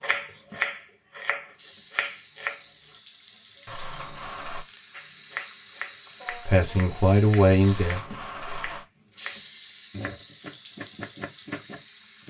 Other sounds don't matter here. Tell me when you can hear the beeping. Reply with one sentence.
The beeping can be heard from 3.6 to 4.7 s and from 7.6 to 8.8 s.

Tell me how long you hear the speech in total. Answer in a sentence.
The speech can be heard for 2 seconds in total.